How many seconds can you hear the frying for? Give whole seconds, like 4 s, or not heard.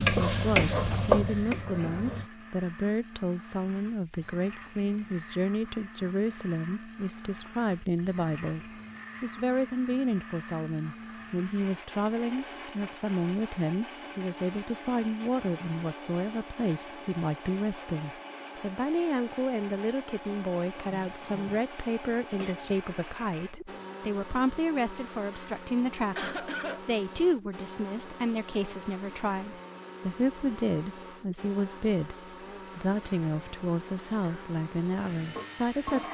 5 s.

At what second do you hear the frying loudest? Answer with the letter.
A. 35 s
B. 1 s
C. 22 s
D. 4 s
B.